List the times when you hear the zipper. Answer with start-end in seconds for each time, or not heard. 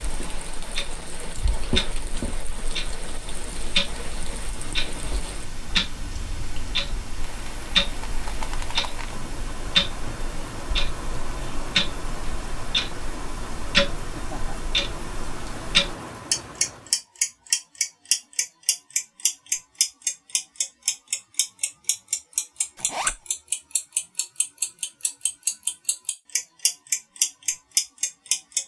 22.8-23.2.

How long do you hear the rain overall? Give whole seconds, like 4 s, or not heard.
17 s.